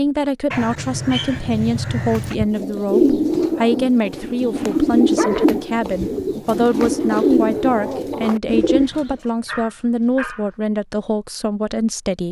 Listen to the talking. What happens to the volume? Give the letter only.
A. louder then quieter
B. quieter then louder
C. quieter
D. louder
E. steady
E.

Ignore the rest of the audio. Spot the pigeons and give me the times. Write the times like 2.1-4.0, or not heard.
2.2-9.2.